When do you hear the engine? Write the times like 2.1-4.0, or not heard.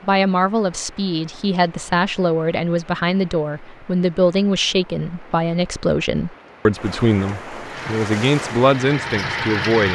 7.6-9.9.